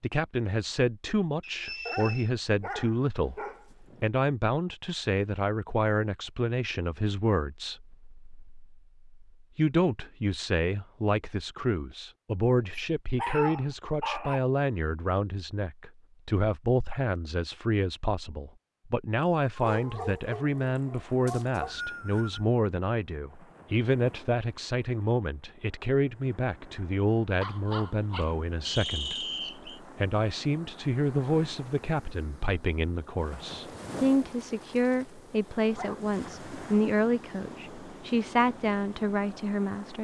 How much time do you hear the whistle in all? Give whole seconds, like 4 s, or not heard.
3 s.